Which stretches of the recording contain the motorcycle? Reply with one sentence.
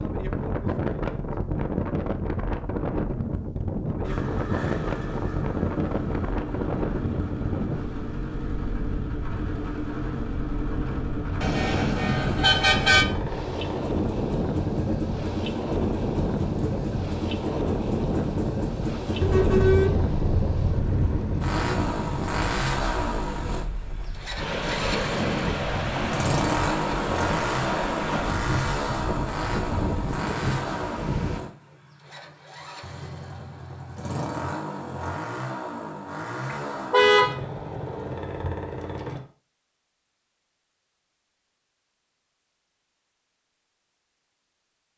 You can hear the motorcycle from 4.0 to 39.2 s.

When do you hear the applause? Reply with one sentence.
The applause can't be heard in this clip.